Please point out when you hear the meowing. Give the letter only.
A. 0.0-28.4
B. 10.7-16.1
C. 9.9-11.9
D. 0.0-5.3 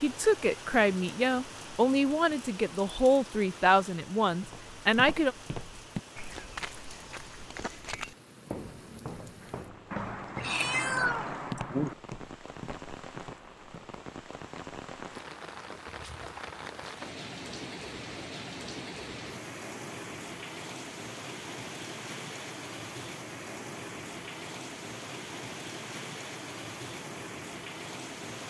C.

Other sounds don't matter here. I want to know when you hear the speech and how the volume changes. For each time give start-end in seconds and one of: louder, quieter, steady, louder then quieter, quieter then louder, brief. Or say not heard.
0.0-5.3 steady.